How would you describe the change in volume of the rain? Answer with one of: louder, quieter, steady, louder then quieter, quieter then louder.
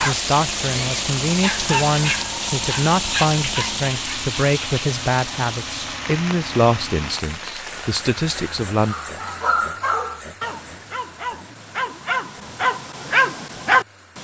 quieter.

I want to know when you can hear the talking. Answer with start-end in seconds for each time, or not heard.
0.0-8.9.